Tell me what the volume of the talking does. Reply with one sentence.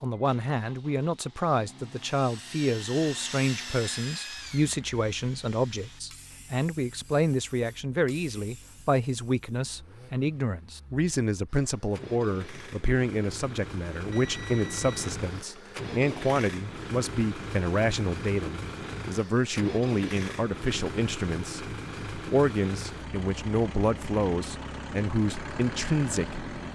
The volume of the talking stays about the same.